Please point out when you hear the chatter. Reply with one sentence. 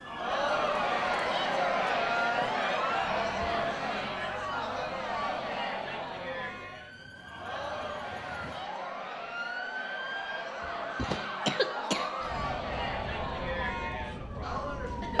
You can hear the chatter from 0.0 to 15.1 s.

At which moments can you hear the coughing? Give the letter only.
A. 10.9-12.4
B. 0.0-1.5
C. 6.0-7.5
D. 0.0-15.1
A.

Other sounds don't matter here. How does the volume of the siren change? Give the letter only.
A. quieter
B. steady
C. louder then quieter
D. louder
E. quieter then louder
E.